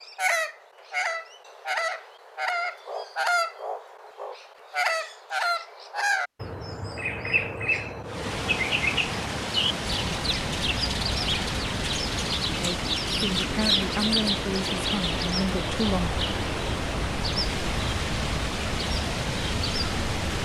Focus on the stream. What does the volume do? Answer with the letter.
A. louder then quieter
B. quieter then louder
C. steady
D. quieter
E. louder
C.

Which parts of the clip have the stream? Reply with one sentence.
You can hear the stream from 8.1 to 20.4 s.